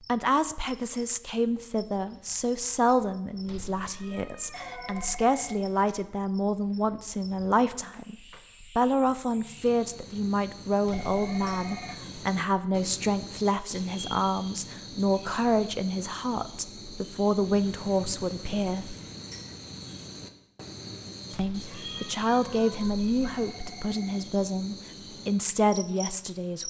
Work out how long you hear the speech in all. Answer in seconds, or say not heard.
24 s.